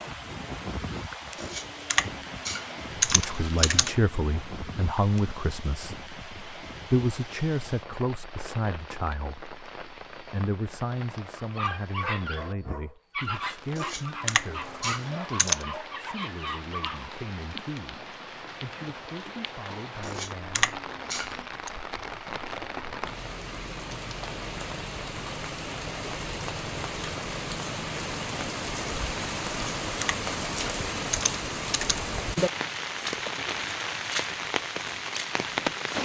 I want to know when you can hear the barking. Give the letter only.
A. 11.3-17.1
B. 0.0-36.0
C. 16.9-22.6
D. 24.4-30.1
A.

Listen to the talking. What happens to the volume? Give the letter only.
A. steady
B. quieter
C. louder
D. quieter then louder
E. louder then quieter
B.